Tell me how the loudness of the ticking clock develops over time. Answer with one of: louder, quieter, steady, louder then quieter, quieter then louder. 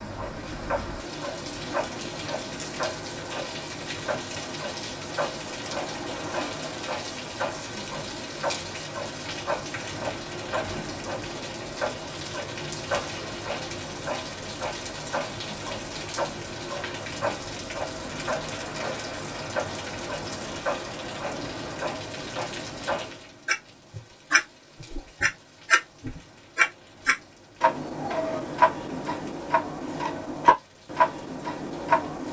louder.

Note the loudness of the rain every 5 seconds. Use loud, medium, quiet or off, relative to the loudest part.
loud, loud, loud, loud, loud, quiet, quiet.